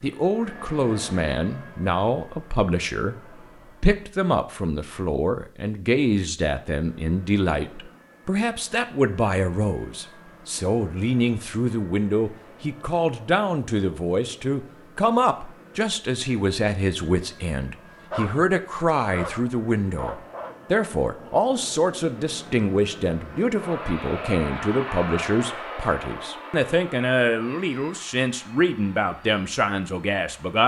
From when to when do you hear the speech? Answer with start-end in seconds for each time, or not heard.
0.0-3.2, 3.8-30.6.